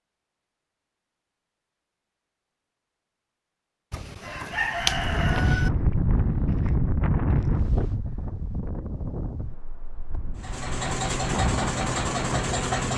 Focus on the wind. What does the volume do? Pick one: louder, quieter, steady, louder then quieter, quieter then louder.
quieter then louder.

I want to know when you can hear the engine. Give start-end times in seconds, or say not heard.
10.3-12.9.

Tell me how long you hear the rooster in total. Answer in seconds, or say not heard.
2 s.